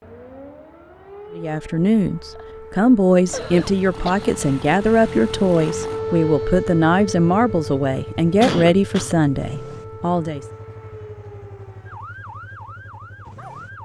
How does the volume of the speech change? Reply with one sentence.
The volume of the speech stays about the same.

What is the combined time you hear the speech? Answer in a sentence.
You can hear the speech for 9 seconds altogether.